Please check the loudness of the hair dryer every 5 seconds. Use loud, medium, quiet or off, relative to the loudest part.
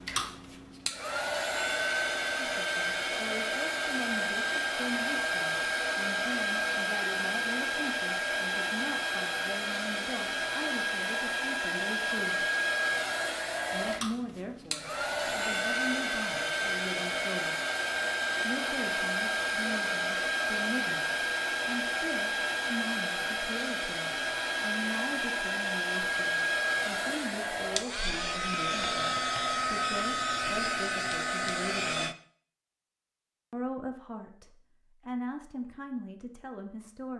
loud, loud, loud, loud, loud, loud, loud, off.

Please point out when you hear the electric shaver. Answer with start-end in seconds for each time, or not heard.
not heard.